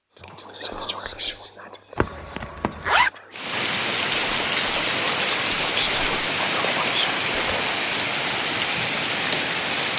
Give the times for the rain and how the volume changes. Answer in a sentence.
The rain can be heard from 3.3 to 9.9 s, at a steady volume.